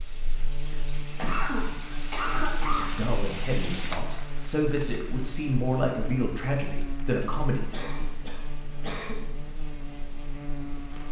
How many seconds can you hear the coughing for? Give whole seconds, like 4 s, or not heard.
4 s.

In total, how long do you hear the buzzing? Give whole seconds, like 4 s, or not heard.
11 s.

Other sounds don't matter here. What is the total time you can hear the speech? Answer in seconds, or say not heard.
5 s.